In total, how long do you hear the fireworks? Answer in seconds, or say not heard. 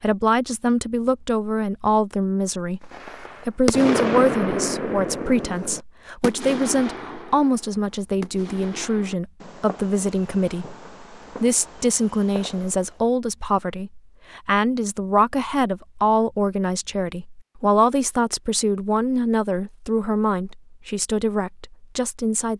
10 s.